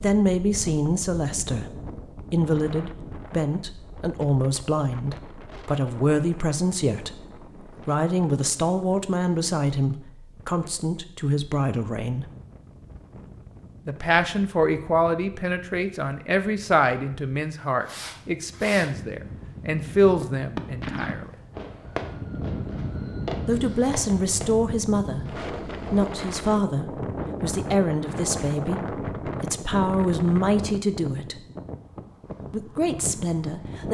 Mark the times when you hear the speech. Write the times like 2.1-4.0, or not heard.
0.0-12.2, 13.8-21.3, 23.4-31.4, 32.5-33.9.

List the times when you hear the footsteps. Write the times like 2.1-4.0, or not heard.
not heard.